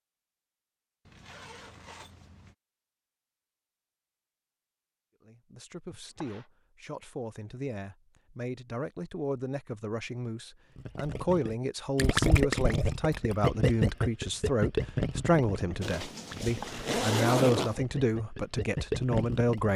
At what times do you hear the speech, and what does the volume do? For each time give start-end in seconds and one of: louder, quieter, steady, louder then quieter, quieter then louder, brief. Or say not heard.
5.2-19.7 louder.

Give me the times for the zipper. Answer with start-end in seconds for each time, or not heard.
1.1-2.5, 15.8-17.8.